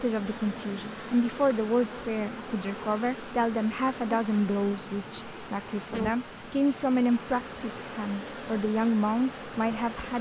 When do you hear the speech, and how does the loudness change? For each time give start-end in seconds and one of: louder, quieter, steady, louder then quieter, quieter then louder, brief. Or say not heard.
0.0-10.1 steady.